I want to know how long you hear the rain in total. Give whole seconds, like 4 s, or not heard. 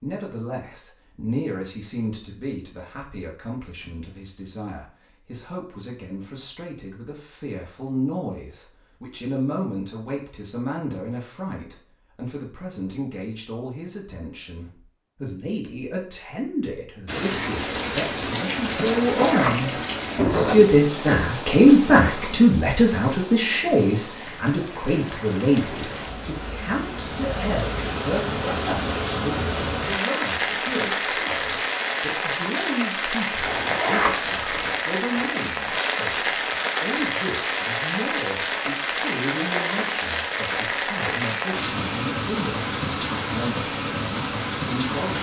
28 s.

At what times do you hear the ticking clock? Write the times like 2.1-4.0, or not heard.
not heard.